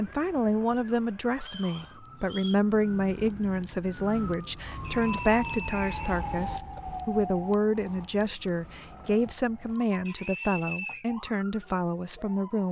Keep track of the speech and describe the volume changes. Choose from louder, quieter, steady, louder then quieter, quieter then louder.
steady.